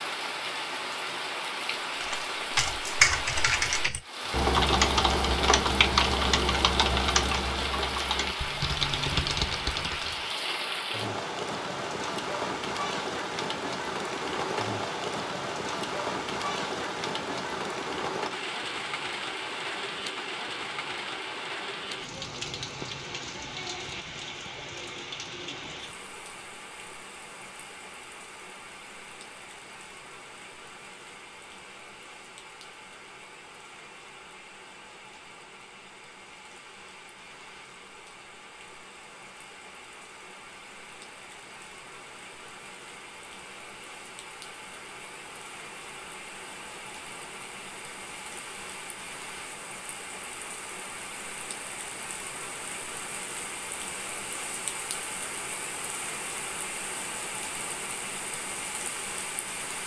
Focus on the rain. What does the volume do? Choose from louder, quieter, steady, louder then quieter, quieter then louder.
quieter then louder.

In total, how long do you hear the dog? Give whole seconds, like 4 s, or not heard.
not heard.